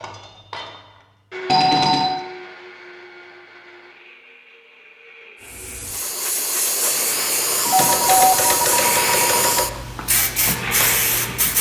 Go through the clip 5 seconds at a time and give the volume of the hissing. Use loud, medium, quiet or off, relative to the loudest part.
off, loud, loud.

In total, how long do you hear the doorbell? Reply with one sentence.
You can hear the doorbell for 3 seconds altogether.